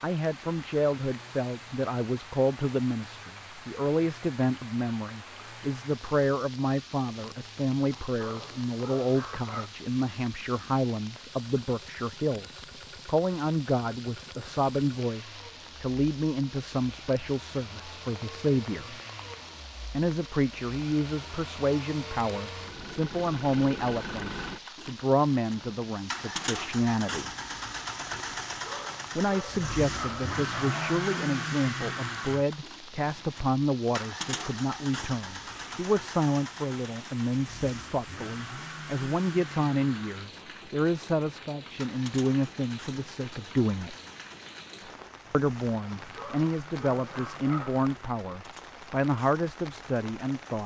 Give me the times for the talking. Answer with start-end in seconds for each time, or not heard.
0.0-18.9, 19.9-27.3, 29.1-44.0, 45.3-50.6.